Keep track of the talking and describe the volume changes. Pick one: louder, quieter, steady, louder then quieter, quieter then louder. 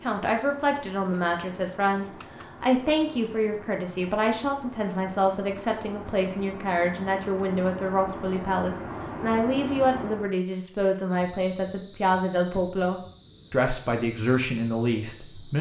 steady.